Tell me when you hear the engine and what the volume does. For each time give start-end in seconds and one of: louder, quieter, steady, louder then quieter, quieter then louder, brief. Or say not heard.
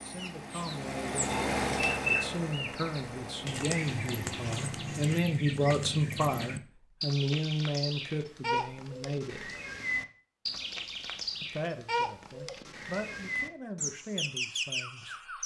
0.0-5.1 louder then quieter.